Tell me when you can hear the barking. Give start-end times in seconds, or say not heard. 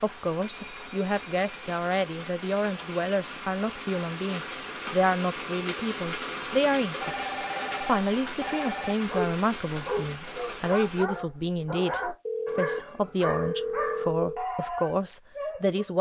9.1-15.9.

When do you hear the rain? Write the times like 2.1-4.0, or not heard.
0.0-11.1.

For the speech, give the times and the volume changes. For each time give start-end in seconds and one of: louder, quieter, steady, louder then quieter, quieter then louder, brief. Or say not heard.
0.0-15.9 steady.